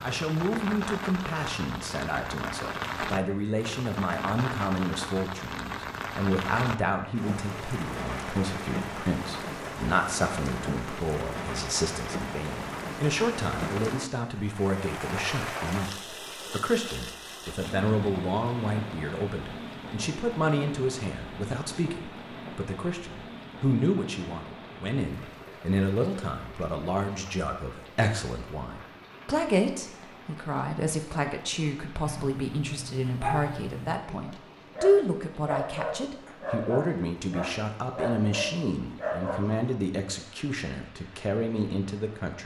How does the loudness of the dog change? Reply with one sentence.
The loudness of the dog stays about the same.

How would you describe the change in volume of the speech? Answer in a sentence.
The volume of the speech stays about the same.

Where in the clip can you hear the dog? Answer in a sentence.
The dog can be heard from 32.0 to 39.6 s.